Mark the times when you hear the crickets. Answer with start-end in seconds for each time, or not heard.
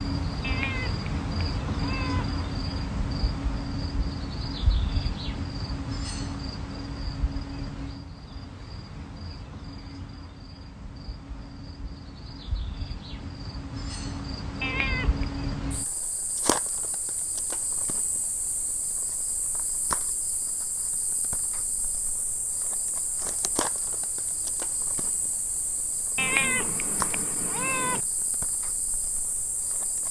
0.0-30.0.